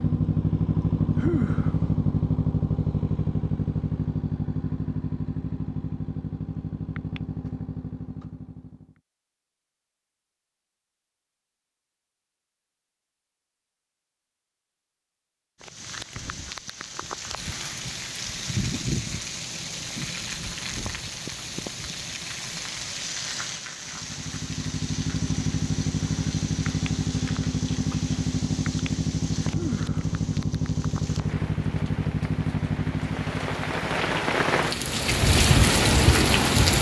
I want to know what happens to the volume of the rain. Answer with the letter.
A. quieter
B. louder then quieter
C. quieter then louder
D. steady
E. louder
C.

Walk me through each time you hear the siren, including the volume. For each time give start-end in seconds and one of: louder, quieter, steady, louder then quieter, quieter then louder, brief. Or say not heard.
not heard.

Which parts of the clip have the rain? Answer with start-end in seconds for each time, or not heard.
15.6-36.7.